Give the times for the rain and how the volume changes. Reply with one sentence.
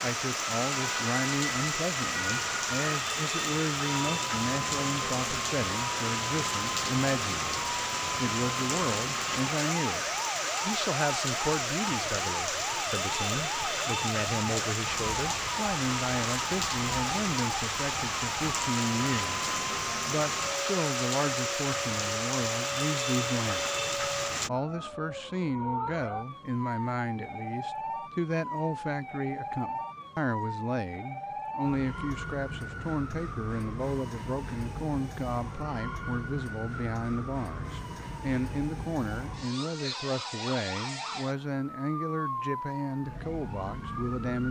The rain can be heard from 0.0 to 24.5 s, at a steady volume.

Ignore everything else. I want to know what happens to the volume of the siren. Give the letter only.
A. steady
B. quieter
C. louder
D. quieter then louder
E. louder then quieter
A.